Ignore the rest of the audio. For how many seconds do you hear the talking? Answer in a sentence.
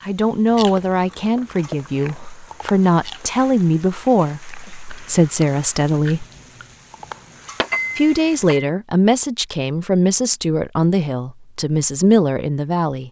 You can hear the talking for 11 seconds altogether.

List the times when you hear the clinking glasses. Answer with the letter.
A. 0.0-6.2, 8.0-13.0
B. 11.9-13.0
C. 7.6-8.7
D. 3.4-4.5
C.